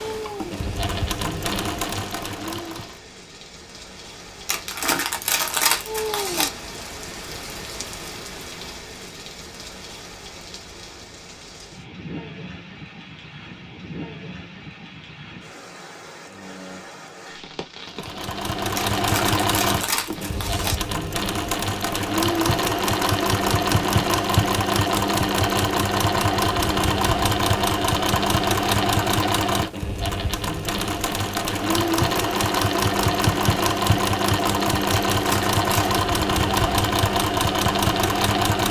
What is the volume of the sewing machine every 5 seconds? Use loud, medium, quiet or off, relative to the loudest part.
medium, off, off, loud, loud, loud, loud, loud.